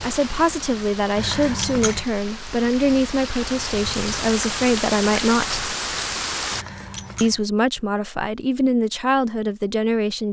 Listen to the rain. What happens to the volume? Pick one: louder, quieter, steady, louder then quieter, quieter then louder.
louder.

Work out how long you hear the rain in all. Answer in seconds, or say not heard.
7 s.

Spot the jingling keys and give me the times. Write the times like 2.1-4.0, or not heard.
1.1-2.0, 6.5-7.5.